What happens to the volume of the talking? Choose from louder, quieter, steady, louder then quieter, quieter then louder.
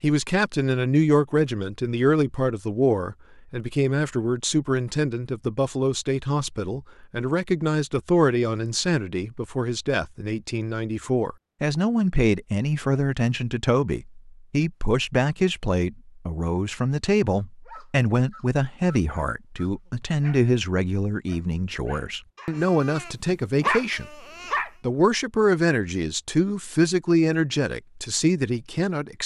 steady.